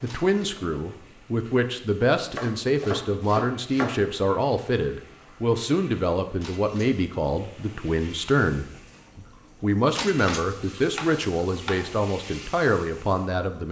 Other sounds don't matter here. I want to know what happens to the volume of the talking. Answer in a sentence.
The volume of the talking stays about the same.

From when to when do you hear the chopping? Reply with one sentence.
The chopping can be heard from 2.1 to 4.2 s and from 10.2 to 11.9 s.